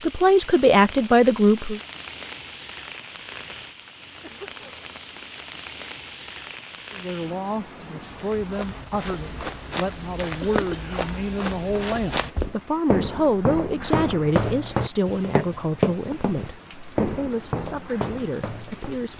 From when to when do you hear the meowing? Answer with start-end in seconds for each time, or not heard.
not heard.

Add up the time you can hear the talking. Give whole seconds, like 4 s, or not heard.
14 s.